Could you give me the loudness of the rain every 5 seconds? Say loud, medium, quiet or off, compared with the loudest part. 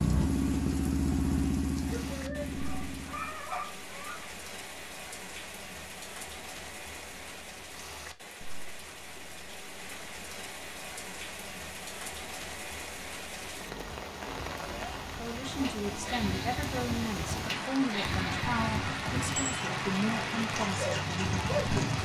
medium, medium, medium, loud, loud.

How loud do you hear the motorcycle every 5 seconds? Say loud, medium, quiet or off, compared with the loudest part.
loud, off, off, medium, loud.